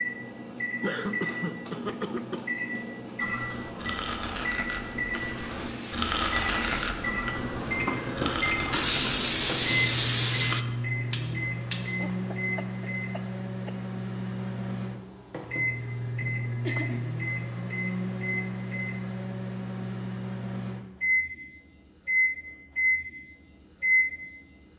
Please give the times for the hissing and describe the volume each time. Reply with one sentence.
The hissing can be heard from 5.1 to 10.7 s, getting louder.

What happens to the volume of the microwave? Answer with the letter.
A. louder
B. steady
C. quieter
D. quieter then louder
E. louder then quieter
A.